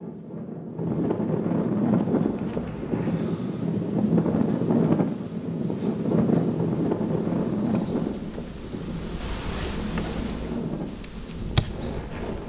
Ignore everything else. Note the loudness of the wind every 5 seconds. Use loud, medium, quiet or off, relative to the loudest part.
loud, loud, medium.